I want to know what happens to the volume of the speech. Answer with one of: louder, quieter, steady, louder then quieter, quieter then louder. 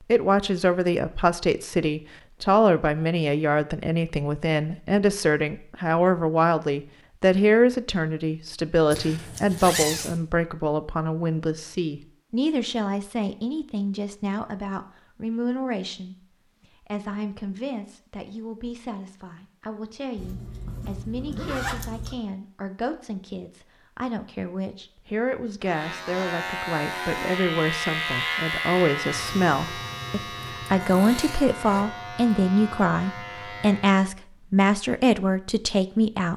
quieter then louder.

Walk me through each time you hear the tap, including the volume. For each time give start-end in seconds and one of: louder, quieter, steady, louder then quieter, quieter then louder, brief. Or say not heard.
not heard.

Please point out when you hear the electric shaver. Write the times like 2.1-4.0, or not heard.
25.6-34.0.